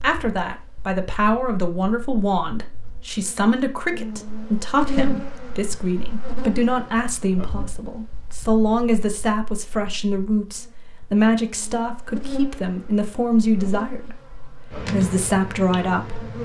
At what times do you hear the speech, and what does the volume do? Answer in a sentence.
You can hear the speech from 0.0 to 16.2 s, at a steady volume.